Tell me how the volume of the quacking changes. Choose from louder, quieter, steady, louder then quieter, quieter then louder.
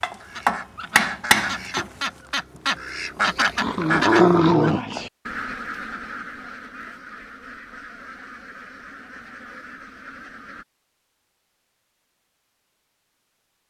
louder then quieter.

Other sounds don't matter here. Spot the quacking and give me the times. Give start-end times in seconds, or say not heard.
0.2-10.7.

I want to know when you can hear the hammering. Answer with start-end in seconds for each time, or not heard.
0.0-1.9.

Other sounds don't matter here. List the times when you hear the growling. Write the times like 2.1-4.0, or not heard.
3.6-5.1.